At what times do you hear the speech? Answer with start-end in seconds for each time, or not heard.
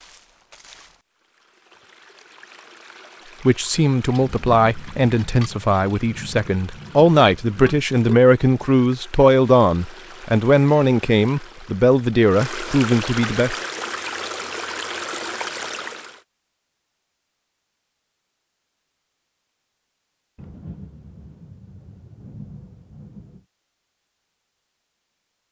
3.5-13.6.